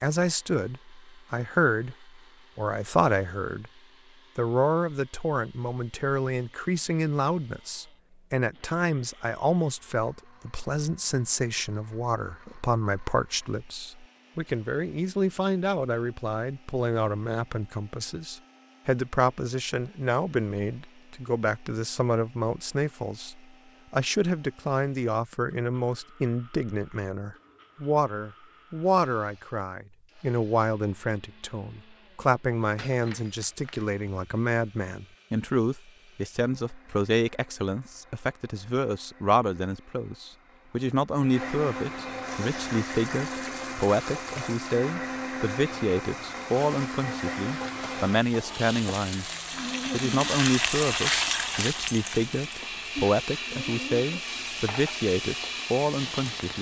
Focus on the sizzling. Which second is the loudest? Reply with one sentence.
The loudest moment of the sizzling is at 51 seconds.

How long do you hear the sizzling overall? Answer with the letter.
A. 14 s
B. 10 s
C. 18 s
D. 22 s
A.